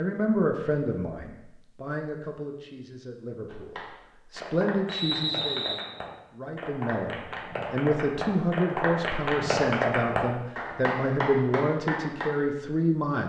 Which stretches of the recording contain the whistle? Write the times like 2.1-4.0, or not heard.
4.8-5.8.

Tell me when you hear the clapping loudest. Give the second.
10 s.